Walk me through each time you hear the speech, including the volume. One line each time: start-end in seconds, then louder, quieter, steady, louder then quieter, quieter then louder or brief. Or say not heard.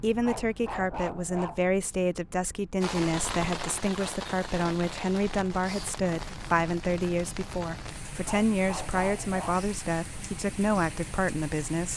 0.0-11.9 steady.